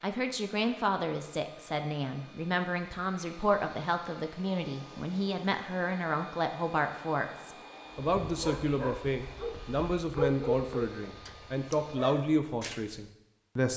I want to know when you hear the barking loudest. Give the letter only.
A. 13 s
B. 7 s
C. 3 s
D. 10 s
D.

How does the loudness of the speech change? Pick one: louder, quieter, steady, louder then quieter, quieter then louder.
steady.